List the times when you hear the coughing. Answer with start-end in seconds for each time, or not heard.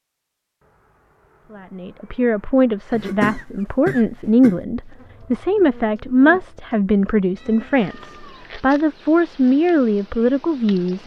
2.9-4.6.